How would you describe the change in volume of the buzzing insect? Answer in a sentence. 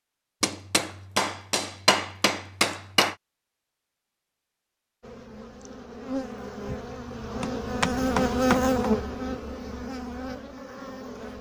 The loudness of the buzzing insect goes up, then down.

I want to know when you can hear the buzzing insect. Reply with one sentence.
The buzzing insect can be heard from 5.0 to 11.3 s.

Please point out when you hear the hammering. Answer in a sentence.
The hammering can be heard from 0.4 to 3.1 s and from 7.4 to 8.9 s.